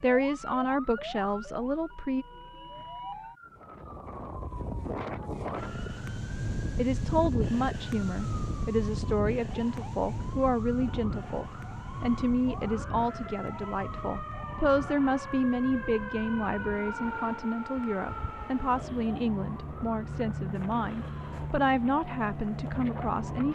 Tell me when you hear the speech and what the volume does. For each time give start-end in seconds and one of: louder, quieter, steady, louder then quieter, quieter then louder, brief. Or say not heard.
0.0-2.2 brief
6.8-23.4 steady.